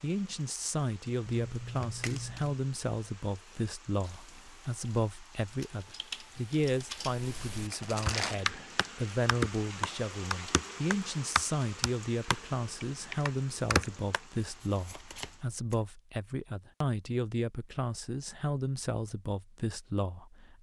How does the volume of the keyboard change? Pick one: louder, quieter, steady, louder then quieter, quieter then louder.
louder.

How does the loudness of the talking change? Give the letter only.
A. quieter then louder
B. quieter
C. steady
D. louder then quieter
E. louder
C.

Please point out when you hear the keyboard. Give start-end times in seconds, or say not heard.
3.3-14.2.